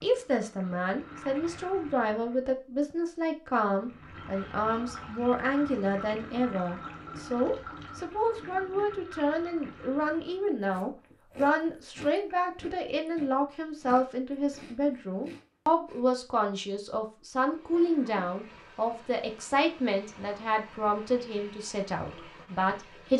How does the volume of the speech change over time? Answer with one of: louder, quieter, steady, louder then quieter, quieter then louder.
steady.